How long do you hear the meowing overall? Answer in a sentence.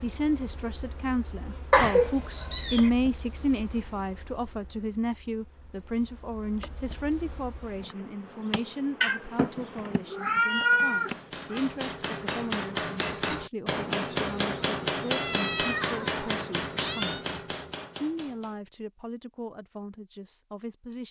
You can hear the meowing for 6 seconds altogether.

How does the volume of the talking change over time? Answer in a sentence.
The loudness of the talking goes down.